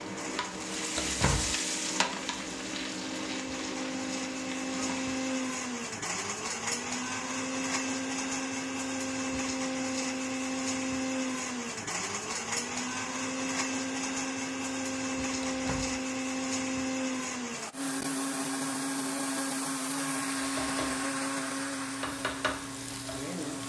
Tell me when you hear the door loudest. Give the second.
1 s.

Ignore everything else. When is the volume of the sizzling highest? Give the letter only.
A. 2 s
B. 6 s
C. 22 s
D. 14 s
A.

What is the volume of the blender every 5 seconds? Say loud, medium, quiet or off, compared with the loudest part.
medium, loud, loud, loud, loud.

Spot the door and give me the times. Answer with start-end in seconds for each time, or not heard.
0.9-1.6, 15.4-16.0.